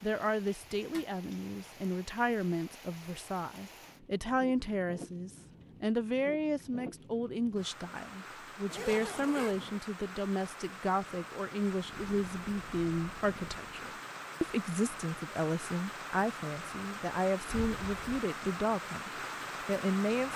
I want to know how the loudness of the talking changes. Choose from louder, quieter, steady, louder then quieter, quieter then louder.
steady.